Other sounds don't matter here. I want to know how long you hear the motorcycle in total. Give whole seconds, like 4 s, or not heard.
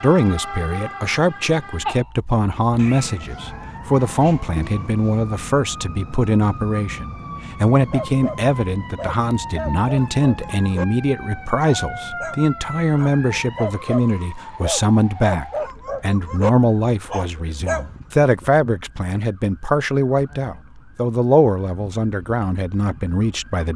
not heard.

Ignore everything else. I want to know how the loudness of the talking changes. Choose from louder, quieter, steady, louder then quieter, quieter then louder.
steady.